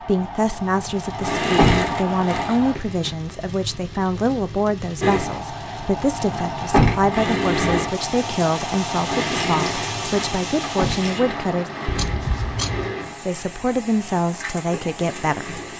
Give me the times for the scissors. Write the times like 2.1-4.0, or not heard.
11.8-12.9.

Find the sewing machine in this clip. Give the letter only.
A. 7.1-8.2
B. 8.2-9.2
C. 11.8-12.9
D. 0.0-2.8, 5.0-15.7
D.